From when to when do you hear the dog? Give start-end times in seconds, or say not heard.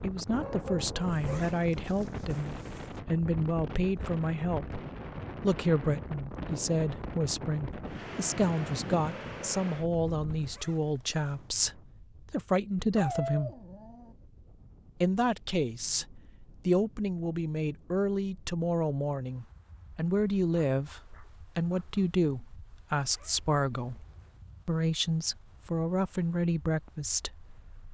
0.3-1.5, 12.9-14.2, 20.5-22.1.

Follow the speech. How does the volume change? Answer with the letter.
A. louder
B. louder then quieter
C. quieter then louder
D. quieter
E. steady
E.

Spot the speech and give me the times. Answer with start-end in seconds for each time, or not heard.
0.0-4.8, 5.4-13.5, 15.0-24.1, 24.6-27.9.